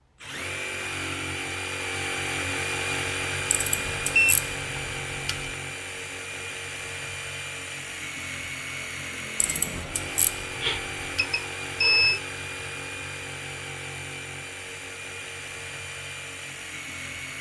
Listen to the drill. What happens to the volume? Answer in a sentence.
The volume of the drill goes down.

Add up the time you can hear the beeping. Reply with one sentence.
You can hear the beeping for 2 seconds altogether.